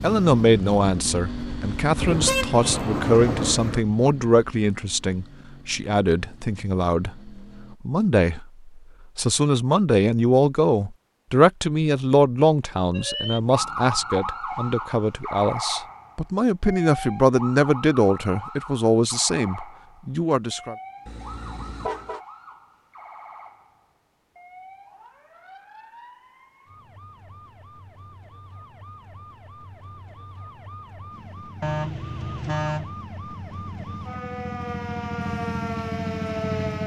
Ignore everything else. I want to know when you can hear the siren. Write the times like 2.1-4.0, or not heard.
12.9-36.8.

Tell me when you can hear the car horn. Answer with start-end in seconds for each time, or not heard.
2.0-3.9, 21.1-22.2, 31.6-33.0.